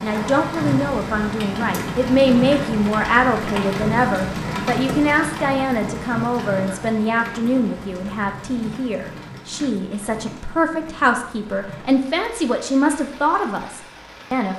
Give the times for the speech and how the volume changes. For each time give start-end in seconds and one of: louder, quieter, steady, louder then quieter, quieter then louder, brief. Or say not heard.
0.0-14.5 steady.